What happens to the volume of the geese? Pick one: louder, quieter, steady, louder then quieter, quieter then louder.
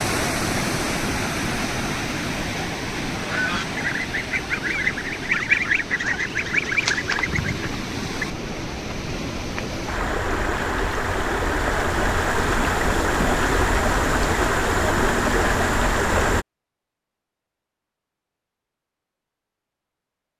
louder then quieter.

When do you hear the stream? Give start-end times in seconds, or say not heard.
0.0-16.4.